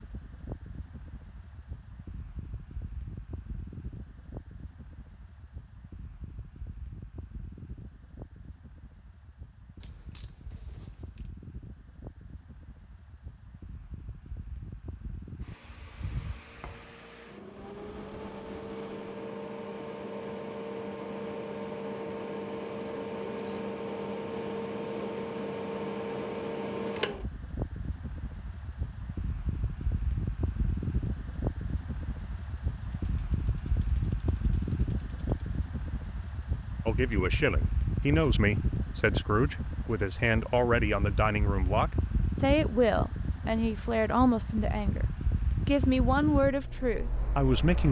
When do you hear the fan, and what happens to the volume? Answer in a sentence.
The fan can be heard from 0.0 to 47.8 s, getting louder.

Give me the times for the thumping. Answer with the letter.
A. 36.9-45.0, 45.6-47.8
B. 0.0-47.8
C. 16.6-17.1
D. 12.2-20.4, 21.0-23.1
C.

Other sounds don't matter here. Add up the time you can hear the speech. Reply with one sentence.
The speech can be heard for 10 seconds in total.